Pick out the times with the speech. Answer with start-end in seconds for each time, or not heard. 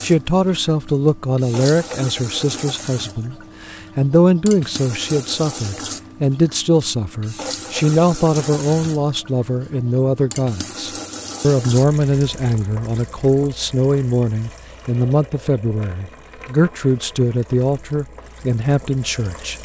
0.0-19.6.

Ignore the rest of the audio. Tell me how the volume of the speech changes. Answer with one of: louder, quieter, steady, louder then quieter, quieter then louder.
steady.